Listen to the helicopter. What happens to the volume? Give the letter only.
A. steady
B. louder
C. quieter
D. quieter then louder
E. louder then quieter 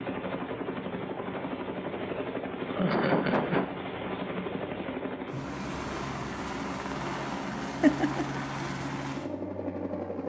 A.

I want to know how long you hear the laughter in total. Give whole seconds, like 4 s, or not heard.
2 s.